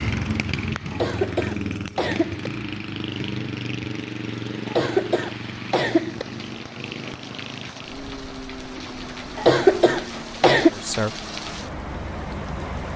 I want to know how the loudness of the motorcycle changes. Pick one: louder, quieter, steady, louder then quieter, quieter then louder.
quieter.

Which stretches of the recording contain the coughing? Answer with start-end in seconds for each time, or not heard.
0.9-2.5, 4.7-6.2, 9.3-10.7.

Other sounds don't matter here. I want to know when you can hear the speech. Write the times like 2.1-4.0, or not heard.
10.7-11.2.